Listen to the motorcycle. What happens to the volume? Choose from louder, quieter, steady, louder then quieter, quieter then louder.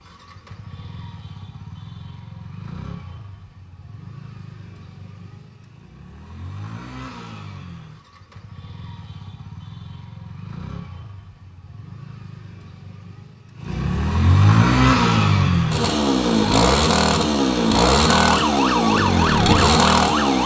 louder.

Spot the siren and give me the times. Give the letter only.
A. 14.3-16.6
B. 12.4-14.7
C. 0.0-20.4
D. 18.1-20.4
D.